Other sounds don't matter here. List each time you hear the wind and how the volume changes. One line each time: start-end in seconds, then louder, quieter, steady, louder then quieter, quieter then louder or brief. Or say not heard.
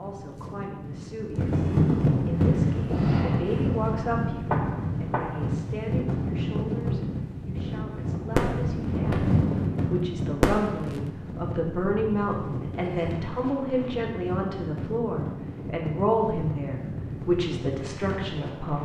0.0-18.8 quieter.